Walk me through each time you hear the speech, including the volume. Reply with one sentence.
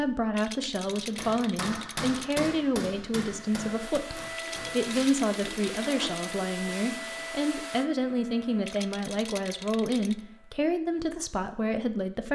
The speech can be heard from 0.0 to 12.3 s, at a steady volume.